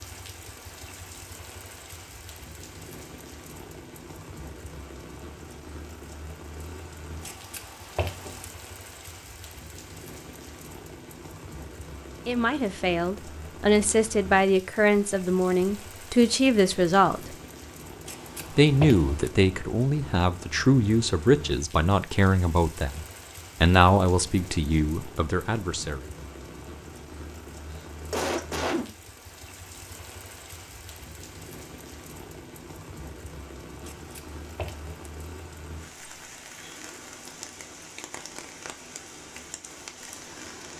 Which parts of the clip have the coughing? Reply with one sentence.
You can hear the coughing from 27.7 to 28.9 s.